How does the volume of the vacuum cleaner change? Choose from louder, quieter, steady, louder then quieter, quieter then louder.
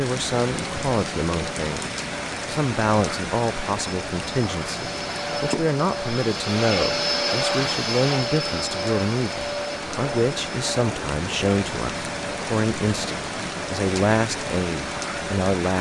louder then quieter.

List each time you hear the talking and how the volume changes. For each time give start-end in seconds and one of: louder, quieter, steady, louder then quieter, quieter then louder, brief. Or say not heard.
0.0-15.7 steady.